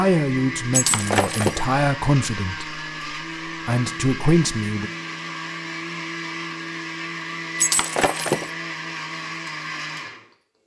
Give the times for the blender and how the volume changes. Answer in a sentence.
The blender can be heard from 0.0 to 10.3 s, at a steady volume.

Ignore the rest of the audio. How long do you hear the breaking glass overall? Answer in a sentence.
The breaking glass can be heard for 2 seconds in total.